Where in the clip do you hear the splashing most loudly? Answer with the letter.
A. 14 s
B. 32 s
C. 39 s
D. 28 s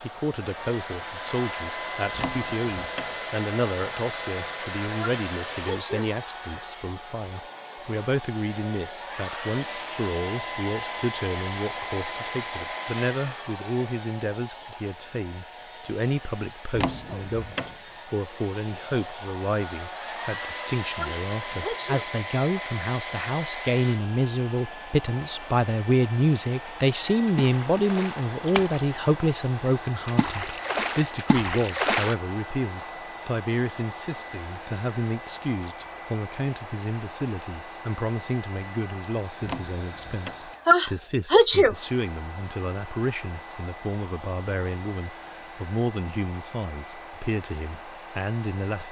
B.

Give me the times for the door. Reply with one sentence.
The door can be heard from 2.1 to 3.1 s, from 16.7 to 17.8 s and from 39.4 to 40.5 s.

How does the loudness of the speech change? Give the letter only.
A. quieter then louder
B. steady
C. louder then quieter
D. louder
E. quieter
C.